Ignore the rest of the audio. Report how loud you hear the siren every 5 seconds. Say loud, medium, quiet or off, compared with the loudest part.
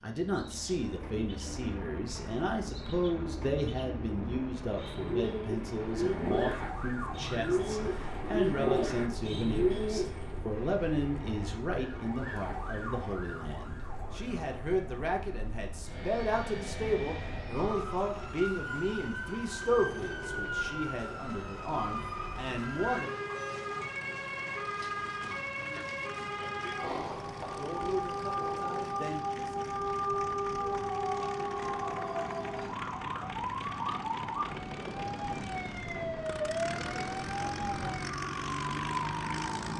off, medium, medium, medium, loud, loud, loud, loud.